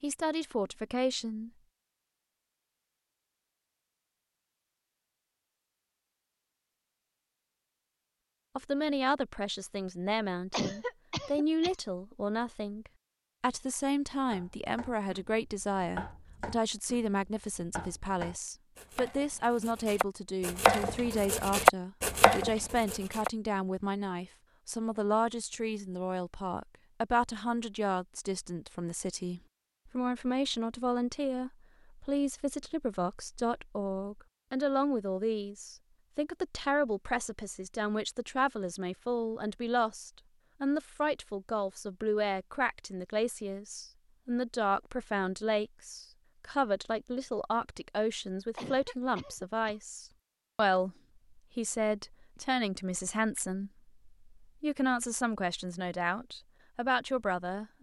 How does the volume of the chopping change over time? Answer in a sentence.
The loudness of the chopping goes up.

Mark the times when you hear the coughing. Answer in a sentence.
The coughing can be heard from 10.5 to 11.8 s and from 48.5 to 49.8 s.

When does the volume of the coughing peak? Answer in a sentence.
The loudest moment of the coughing is at 11 seconds.